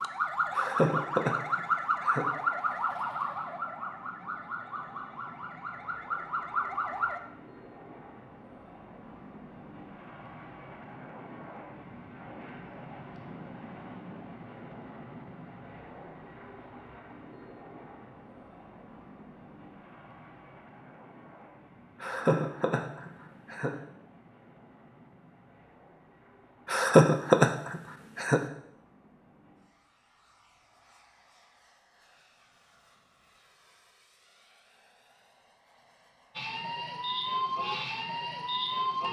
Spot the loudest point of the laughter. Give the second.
27 s.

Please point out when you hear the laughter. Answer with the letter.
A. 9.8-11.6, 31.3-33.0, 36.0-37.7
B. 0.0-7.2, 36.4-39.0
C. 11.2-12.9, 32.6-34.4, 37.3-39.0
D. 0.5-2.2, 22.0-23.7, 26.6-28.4
D.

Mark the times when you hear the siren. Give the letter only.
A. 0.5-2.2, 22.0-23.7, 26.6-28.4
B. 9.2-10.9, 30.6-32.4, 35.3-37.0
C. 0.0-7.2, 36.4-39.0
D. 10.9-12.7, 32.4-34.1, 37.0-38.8
C.